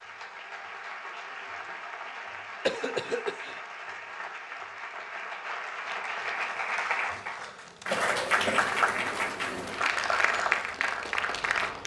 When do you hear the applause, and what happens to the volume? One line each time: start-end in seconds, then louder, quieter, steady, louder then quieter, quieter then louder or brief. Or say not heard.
0.0-11.8 louder.